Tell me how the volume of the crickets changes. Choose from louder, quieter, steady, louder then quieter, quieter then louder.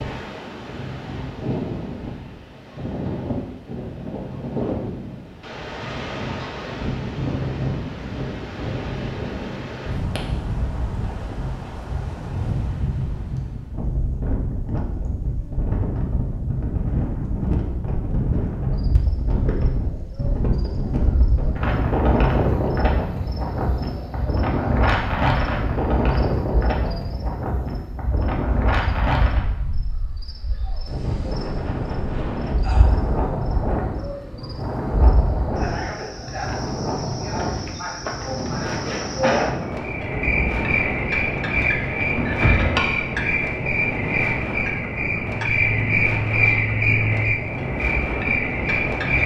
louder.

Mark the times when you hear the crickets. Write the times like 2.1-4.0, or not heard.
18.6-49.2.